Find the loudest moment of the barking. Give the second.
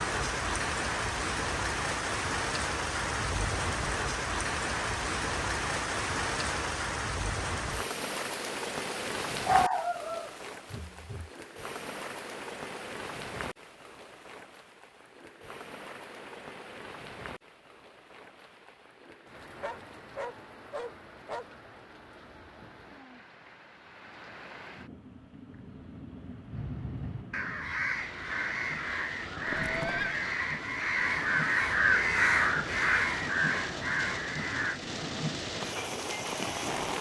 10 s.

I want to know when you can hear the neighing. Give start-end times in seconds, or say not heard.
29.4-30.2.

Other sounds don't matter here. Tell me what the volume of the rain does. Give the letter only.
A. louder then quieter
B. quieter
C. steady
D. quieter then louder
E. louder
D.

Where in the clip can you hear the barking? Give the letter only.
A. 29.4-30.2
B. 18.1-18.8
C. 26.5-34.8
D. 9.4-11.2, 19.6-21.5
D.